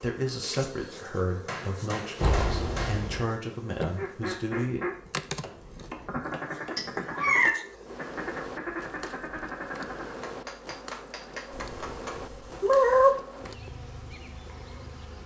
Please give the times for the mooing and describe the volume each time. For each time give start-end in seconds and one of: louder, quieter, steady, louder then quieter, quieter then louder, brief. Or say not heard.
not heard.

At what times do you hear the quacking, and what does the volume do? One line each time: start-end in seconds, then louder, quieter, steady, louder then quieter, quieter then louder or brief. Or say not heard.
4.0-10.2 steady.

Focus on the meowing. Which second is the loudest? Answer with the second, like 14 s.
13 s.